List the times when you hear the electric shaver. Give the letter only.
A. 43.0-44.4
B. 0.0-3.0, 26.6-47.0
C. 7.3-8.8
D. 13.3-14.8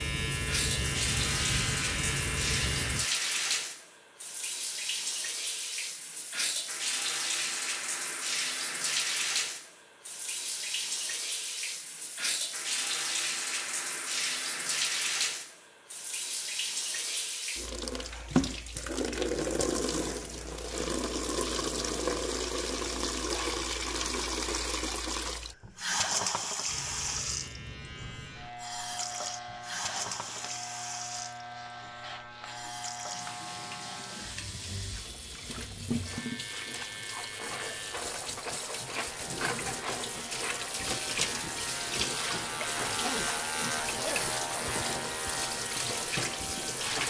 B.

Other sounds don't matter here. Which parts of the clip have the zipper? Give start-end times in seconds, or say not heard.
43.0-44.4.